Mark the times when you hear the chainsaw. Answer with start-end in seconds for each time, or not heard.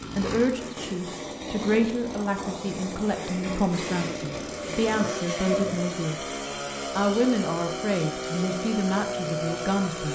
0.0-10.1.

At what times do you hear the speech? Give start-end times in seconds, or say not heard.
0.1-6.2, 7.0-10.1.